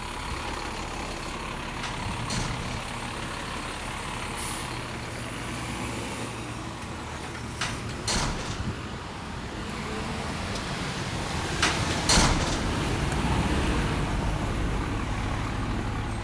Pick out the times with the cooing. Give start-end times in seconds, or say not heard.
not heard.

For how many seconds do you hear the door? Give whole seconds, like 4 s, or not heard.
3 s.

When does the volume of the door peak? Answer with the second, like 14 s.
12 s.